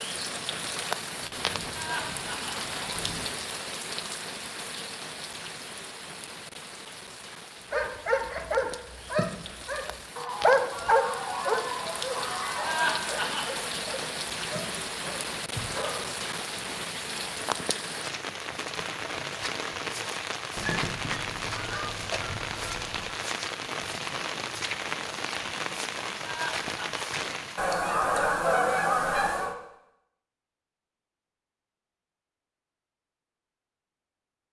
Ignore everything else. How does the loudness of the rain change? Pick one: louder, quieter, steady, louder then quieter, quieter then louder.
quieter then louder.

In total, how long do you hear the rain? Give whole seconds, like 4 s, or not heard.
28 s.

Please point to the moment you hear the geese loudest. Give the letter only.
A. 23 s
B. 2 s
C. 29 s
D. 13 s
C.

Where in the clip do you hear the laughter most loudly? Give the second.
13 s.